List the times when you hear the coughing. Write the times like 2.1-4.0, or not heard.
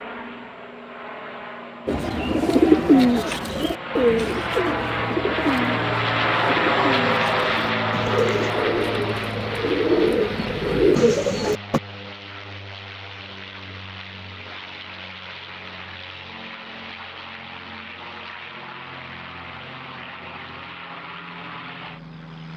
not heard.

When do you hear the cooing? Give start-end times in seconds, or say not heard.
1.9-11.8.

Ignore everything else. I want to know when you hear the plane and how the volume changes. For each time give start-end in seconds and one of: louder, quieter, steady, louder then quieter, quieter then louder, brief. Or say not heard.
0.0-22.5 louder then quieter.